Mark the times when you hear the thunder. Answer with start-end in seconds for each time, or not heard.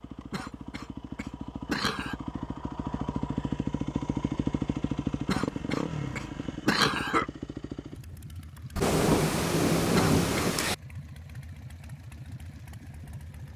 8.8-10.8.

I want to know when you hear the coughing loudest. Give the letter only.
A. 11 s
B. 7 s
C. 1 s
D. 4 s
B.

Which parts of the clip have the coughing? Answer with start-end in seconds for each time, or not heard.
0.3-2.1, 5.2-7.2, 9.9-10.5.